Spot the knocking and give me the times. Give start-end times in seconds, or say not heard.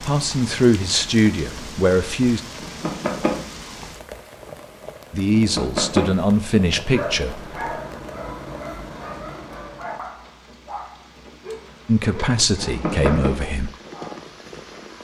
2.6-3.5, 5.3-6.2, 12.6-13.3.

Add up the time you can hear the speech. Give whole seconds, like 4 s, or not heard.
7 s.